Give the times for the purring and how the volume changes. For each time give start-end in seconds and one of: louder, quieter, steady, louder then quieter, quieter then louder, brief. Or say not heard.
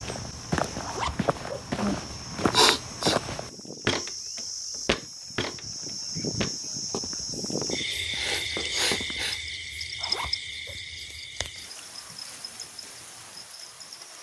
not heard.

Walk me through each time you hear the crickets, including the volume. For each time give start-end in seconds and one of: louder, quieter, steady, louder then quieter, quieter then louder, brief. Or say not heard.
0.0-14.1 louder then quieter.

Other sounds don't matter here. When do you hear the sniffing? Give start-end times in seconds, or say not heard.
2.1-3.2, 8.1-9.4.